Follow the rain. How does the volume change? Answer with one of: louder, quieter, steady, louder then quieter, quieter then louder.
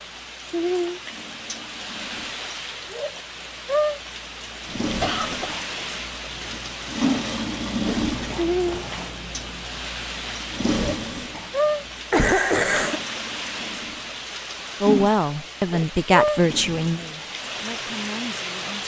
steady.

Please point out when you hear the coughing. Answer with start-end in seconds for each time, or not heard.
4.8-5.6, 12.1-13.0.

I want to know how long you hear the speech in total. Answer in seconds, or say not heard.
4 s.